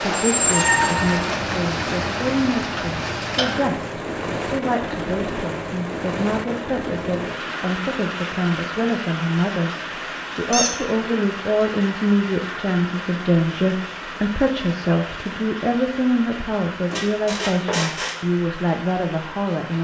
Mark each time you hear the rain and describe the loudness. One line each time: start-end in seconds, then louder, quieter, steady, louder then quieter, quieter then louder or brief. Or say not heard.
0.0-19.7 quieter.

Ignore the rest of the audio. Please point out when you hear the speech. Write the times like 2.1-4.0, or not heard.
0.0-19.7.